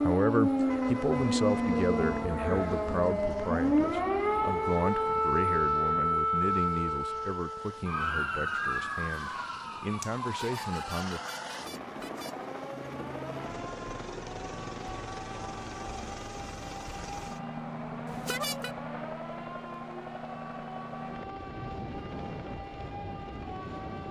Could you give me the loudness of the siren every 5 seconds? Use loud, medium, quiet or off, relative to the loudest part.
loud, loud, quiet, quiet, quiet.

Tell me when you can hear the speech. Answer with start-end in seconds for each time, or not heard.
0.0-11.2.